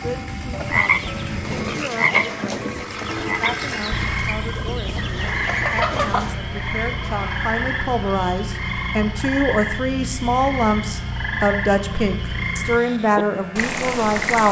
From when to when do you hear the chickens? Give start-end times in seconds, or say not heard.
0.5-6.3.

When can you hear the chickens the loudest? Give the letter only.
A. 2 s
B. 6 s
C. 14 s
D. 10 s
B.